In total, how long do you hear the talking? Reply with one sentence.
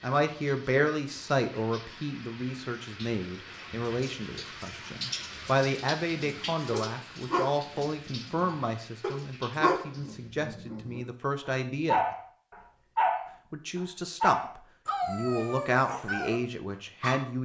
The talking can be heard for 16 seconds in total.